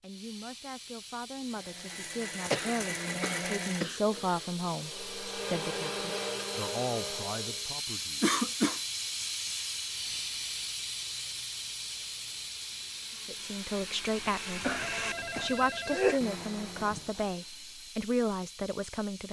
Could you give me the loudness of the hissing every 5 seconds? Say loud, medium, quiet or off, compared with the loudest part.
medium, loud, loud, medium.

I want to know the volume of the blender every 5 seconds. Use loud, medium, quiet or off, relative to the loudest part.
loud, loud, medium, medium.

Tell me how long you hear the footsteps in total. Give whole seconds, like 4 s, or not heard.
not heard.